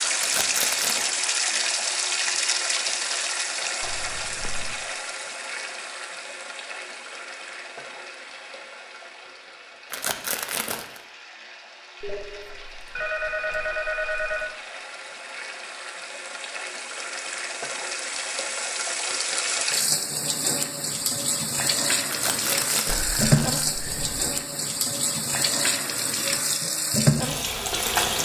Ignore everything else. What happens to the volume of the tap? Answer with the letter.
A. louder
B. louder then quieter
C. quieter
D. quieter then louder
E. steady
D.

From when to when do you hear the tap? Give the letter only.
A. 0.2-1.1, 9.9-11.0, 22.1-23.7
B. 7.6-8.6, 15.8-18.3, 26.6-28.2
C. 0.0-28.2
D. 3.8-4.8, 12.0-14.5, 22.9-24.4
C.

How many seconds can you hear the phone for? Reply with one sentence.
The phone can be heard for 5 seconds in total.